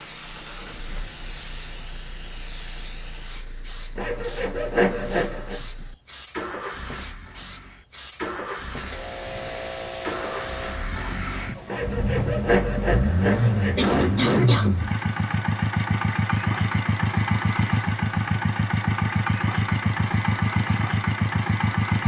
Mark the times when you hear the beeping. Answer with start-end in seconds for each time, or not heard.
not heard.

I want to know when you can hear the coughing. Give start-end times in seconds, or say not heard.
13.3-14.8.